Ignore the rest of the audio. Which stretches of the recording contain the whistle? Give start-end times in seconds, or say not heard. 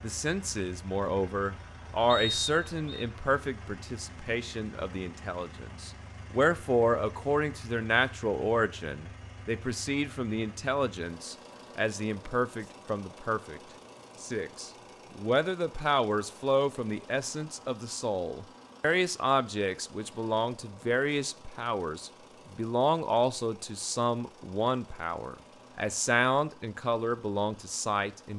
2.0-3.0.